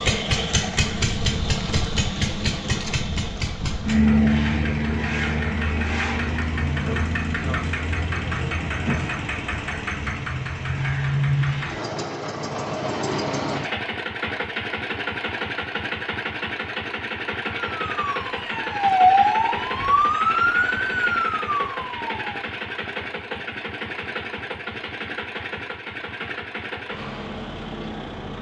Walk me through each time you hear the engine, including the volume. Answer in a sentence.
You can hear the engine from 0.0 to 28.3 s, getting quieter.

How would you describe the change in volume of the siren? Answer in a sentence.
The loudness of the siren goes up, then down.